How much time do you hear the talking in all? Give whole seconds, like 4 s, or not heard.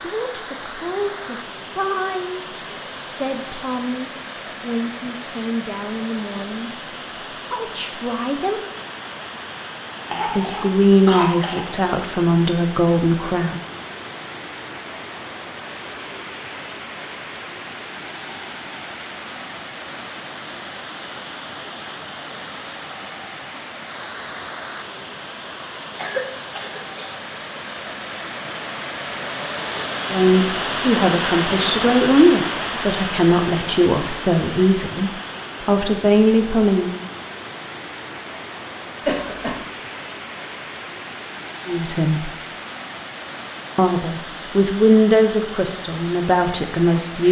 23 s.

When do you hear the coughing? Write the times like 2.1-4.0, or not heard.
10.1-11.7, 25.9-27.1, 39.0-39.6.